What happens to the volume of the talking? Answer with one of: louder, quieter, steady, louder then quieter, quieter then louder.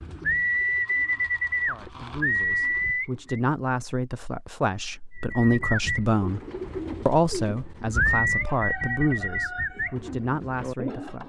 louder then quieter.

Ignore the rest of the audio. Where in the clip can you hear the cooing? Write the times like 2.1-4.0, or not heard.
0.0-3.4, 5.2-11.2.